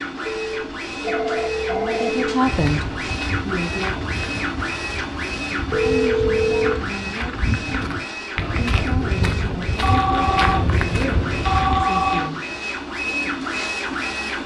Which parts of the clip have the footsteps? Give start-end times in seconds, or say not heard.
2.4-11.8.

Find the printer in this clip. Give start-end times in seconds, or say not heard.
0.0-14.4.